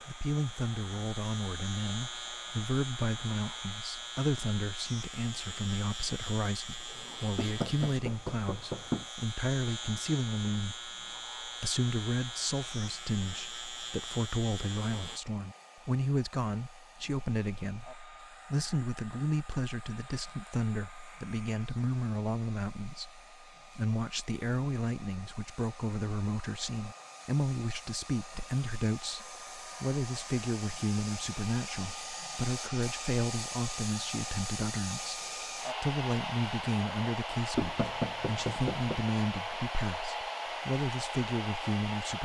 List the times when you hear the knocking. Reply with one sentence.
You can hear the knocking from 7.3 to 9.1 s and from 37.5 to 39.0 s.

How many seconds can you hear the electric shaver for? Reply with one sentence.
You can hear the electric shaver for 15 seconds altogether.